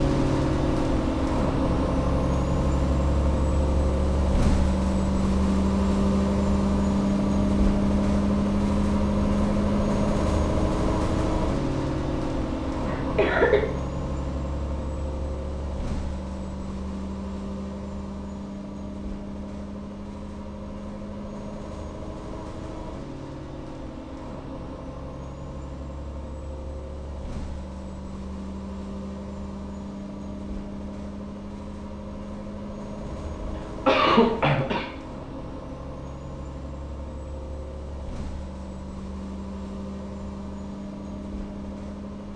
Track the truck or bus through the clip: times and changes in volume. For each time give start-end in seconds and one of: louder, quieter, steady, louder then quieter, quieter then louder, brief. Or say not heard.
0.0-42.3 quieter.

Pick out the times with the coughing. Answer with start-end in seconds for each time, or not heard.
12.8-13.6, 33.0-34.9.